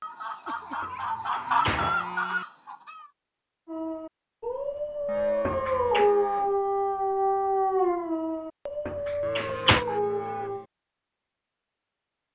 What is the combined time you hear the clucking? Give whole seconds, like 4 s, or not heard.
3 s.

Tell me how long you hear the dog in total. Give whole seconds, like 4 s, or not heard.
7 s.